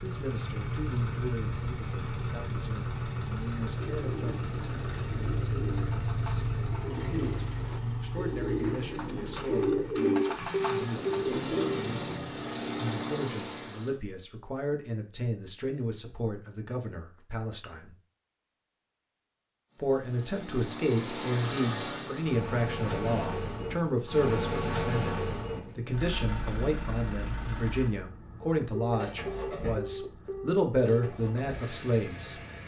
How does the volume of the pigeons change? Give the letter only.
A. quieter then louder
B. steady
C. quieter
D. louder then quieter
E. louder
E.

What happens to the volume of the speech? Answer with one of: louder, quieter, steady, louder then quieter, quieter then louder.
louder.